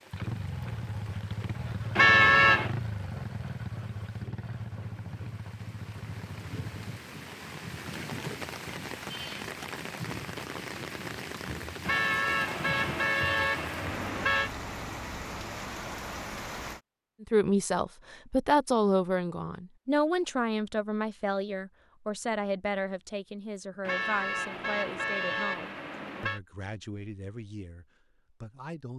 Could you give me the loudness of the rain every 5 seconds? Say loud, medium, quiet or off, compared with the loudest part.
quiet, loud, loud, loud, off, off.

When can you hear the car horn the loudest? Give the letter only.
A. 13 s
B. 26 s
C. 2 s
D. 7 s
C.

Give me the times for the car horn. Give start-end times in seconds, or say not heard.
1.9-2.7, 11.8-14.5, 23.9-26.4.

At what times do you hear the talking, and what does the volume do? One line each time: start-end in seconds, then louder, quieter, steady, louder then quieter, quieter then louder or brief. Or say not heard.
17.2-28.9 quieter.